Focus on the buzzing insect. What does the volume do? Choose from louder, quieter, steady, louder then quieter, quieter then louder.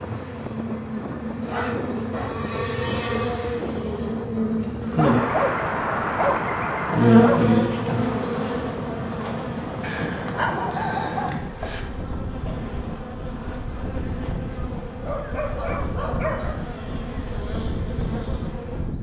louder then quieter.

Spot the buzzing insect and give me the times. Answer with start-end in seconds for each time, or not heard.
0.0-18.9.